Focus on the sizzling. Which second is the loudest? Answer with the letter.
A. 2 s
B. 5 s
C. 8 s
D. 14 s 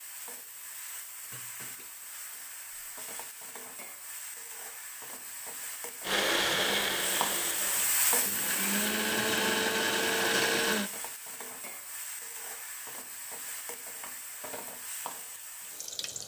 C.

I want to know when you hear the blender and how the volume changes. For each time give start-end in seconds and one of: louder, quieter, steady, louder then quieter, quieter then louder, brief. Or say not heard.
6.0-10.9 quieter then louder.